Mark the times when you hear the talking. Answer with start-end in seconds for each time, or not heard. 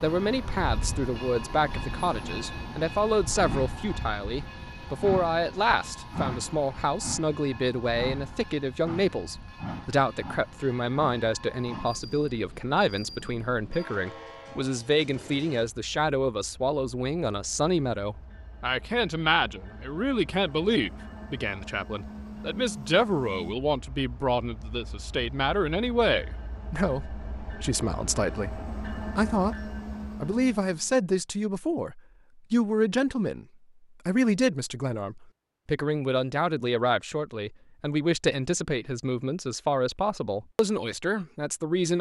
0.0-33.5, 34.0-41.9.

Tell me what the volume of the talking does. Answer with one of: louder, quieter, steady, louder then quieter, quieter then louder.
steady.